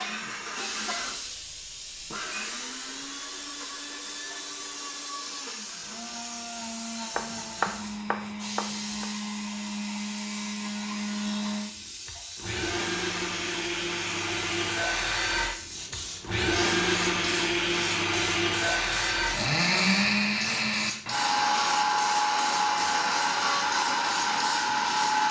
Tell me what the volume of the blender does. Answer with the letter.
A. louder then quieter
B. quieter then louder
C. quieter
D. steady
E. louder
E.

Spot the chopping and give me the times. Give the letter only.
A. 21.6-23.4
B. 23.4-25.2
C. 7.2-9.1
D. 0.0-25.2
C.